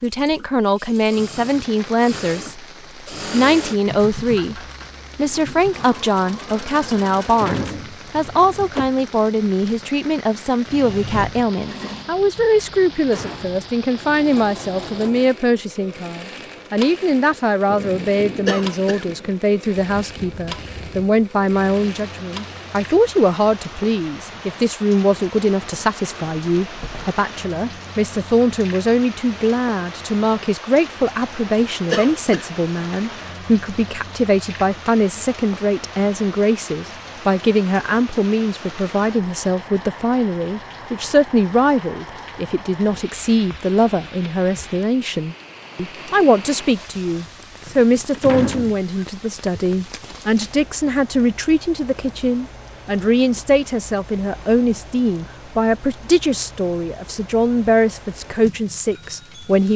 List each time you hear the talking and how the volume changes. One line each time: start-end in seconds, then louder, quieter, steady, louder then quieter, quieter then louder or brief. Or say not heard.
0.0-2.6 brief
3.3-59.7 steady.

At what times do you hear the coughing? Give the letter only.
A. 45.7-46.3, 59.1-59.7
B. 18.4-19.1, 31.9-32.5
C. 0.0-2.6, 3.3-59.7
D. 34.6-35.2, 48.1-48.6
B.